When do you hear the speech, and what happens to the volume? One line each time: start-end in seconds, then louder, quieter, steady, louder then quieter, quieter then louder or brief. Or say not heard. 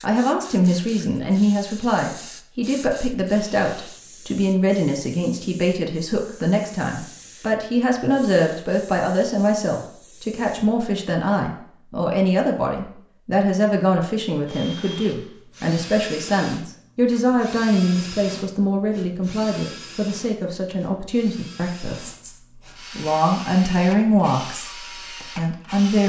0.0-26.0 steady.